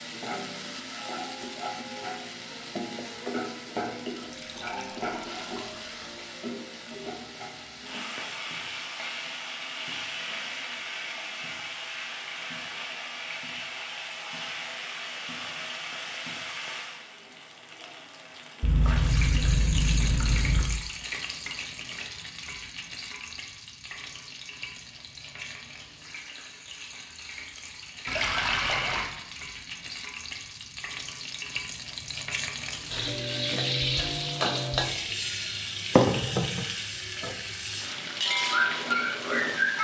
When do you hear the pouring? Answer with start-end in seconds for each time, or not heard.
4.2-6.0, 18.6-20.6, 28.1-29.1.